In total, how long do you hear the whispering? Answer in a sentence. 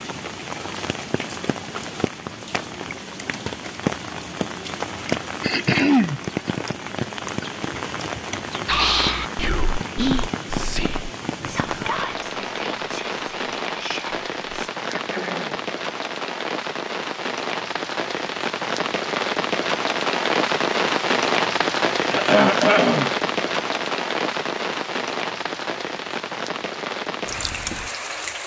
You can hear the whispering for 6 seconds altogether.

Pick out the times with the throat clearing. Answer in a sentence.
You can hear the throat clearing from 5.4 to 6.2 s, from 14.8 to 15.7 s and from 22.1 to 23.1 s.